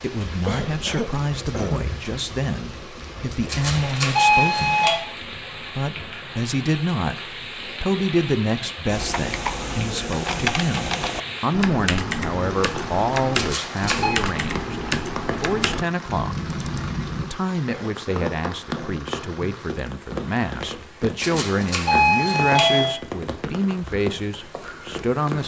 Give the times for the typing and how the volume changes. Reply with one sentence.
You can hear the typing from 8.8 to 17.3 s, at a steady volume.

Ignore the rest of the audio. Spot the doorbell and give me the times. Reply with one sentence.
You can hear the doorbell from 3.5 to 5.0 s, from 13.3 to 14.2 s and from 21.2 to 22.9 s.